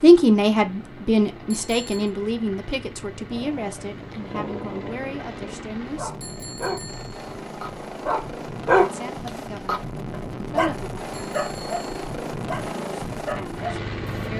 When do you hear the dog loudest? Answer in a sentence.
The volume of the dog peaks at 9 seconds.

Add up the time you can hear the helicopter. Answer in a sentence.
You can hear the helicopter for 14 seconds altogether.